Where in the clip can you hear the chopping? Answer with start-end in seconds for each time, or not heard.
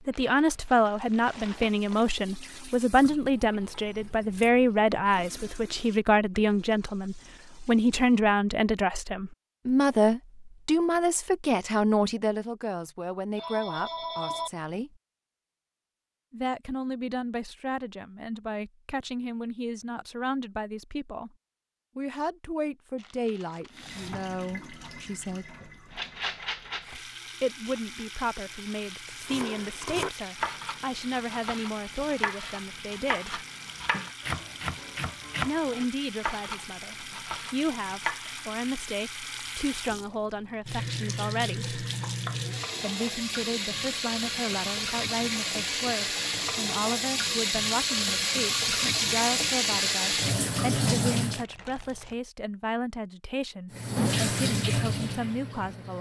29.2-38.5.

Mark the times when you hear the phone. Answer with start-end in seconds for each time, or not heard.
13.3-14.5.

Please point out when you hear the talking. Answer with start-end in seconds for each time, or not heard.
0.1-14.9, 16.3-21.3, 21.9-25.6, 27.4-33.4, 35.5-41.8, 42.8-55.9.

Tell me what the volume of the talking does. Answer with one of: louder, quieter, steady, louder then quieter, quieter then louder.
quieter.